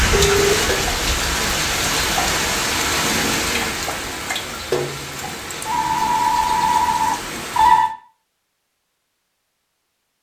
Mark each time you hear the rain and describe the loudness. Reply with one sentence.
The rain can be heard from 0.0 to 7.9 s, getting quieter.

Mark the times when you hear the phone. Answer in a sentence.
You can hear the phone from 0.1 to 0.7 s and from 5.7 to 7.9 s.